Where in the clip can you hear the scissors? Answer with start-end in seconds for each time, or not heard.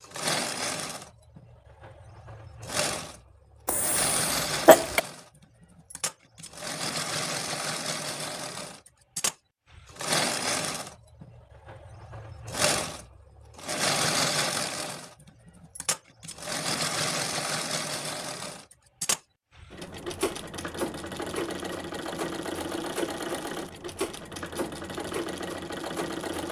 not heard.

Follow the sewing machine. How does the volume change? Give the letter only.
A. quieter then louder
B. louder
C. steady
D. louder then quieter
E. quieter
C.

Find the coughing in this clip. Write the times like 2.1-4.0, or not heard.
3.6-5.0.